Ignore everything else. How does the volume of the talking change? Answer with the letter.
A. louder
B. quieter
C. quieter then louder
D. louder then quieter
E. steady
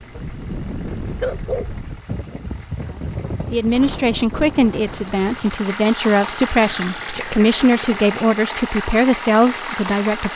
E.